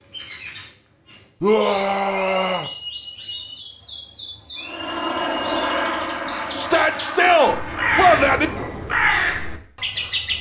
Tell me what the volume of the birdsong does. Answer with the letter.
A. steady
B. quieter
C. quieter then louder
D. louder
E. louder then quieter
D.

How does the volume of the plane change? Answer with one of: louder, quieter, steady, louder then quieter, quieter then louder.
quieter.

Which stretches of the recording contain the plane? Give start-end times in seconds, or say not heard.
4.6-9.0.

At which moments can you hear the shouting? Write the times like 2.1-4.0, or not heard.
1.4-2.7, 6.5-8.5.